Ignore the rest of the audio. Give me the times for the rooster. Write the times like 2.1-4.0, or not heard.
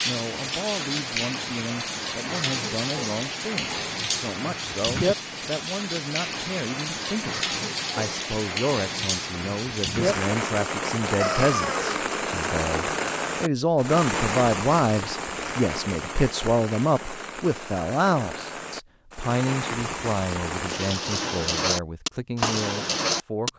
11.2-12.0.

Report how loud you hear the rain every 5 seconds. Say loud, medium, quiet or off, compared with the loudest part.
loud, loud, loud, medium, loud.